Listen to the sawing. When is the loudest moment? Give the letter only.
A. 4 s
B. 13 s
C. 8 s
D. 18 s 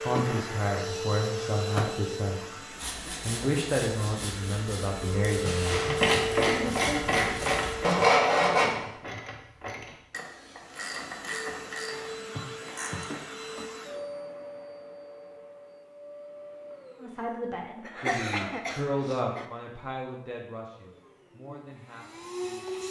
C.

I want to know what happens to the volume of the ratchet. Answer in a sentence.
The volume of the ratchet goes down.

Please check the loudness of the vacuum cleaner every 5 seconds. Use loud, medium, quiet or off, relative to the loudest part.
loud, loud, medium, quiet, medium.